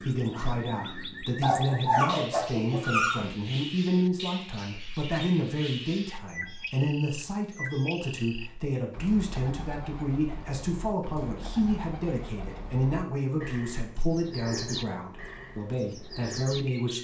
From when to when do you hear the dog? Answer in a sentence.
You can hear the dog from 1.4 to 3.3 s.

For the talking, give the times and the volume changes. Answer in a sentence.
You can hear the talking from 0.0 to 16.9 s, at a steady volume.